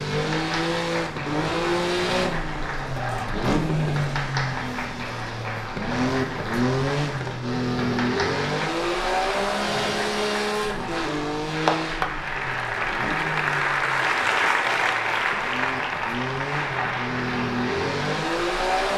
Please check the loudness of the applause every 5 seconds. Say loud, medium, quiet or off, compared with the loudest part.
medium, medium, loud, loud.